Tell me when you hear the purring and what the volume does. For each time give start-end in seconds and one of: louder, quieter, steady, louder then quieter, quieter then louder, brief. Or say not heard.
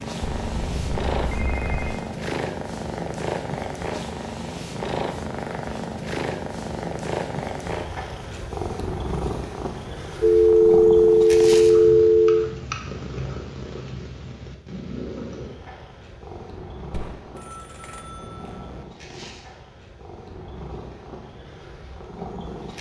0.0-22.7 quieter.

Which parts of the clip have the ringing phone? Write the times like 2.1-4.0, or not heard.
0.2-2.0, 10.2-12.5, 16.9-18.9.